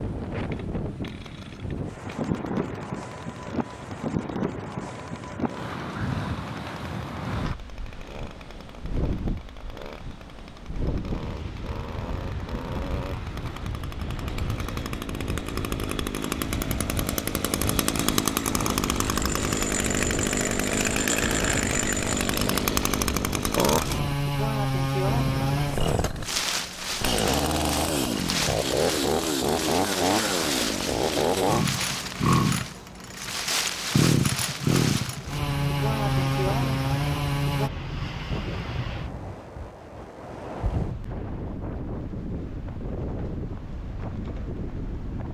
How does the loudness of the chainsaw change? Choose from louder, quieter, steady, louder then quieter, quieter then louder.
louder.